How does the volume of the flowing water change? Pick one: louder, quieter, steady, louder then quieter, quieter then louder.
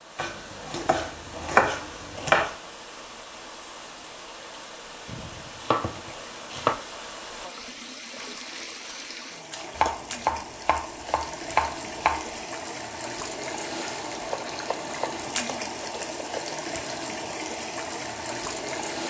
louder.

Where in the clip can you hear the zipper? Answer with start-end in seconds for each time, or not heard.
not heard.